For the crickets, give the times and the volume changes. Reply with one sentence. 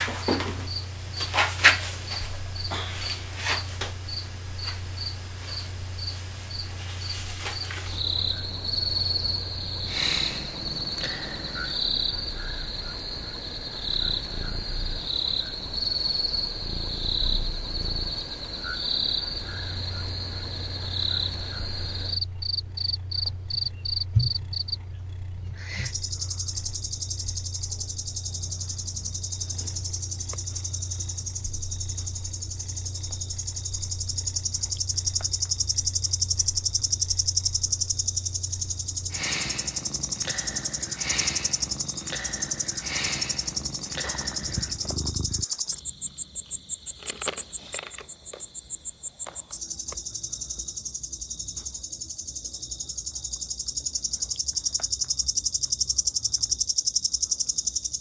You can hear the crickets from 0.0 to 57.9 s, at a steady volume.